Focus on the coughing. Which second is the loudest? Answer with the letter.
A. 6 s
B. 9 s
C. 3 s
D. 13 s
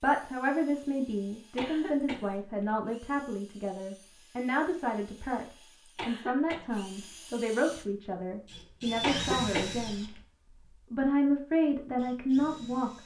B.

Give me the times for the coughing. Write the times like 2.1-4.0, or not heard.
1.6-2.5, 6.0-6.9, 9.0-10.2.